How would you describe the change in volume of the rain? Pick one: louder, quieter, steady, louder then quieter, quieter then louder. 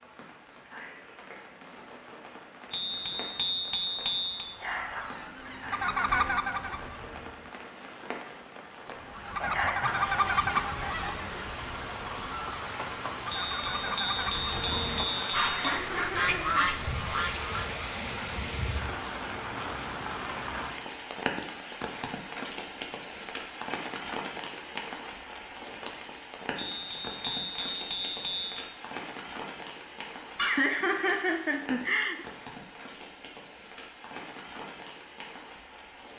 louder then quieter.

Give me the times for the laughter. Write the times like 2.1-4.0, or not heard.
9.2-9.8, 15.4-16.8, 30.4-32.2.